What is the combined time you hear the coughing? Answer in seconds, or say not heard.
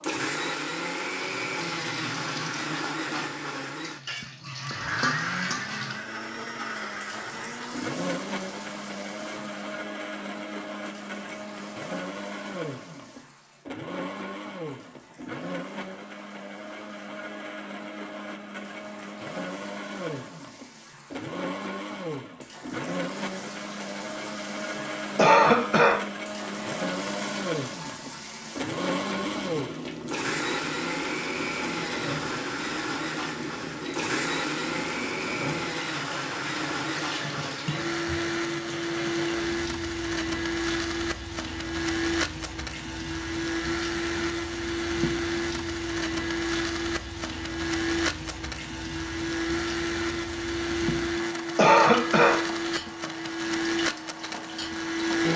2 s.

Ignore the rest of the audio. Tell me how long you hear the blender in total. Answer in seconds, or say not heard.
55 s.